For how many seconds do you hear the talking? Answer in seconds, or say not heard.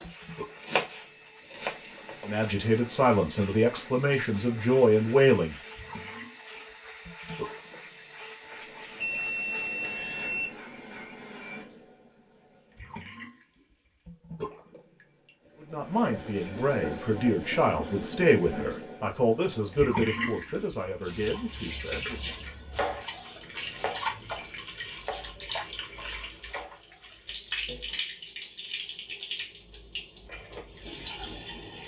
10 s.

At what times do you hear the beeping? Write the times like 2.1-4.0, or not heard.
9.0-10.5.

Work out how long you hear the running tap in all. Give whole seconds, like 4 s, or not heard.
32 s.